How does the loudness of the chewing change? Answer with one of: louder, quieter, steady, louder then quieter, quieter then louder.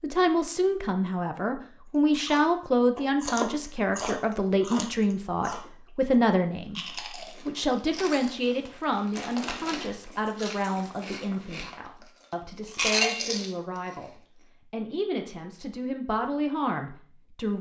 quieter then louder.